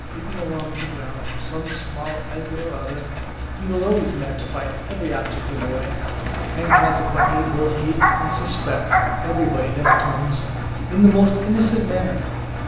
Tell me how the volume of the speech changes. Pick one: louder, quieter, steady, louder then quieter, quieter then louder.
louder.